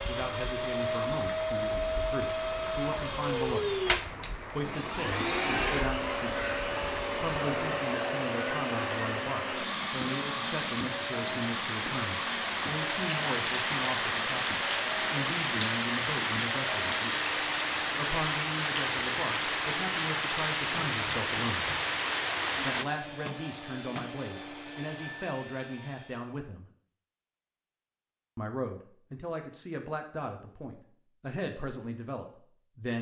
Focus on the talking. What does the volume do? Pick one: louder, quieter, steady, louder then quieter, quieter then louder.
steady.